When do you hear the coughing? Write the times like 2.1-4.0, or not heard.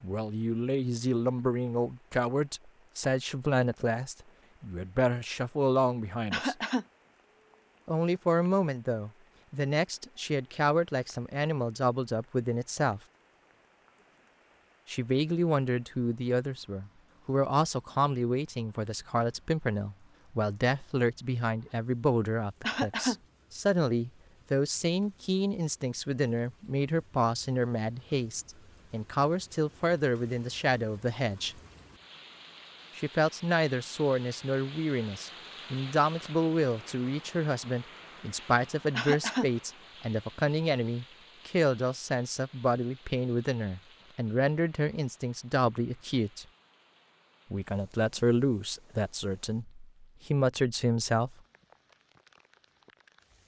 6.3-6.8, 22.6-23.1, 39.0-39.5.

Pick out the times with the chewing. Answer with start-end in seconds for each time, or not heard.
not heard.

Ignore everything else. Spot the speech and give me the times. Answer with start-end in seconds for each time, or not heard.
0.0-6.5, 7.8-13.0, 14.8-31.6, 33.0-46.5, 47.5-51.4.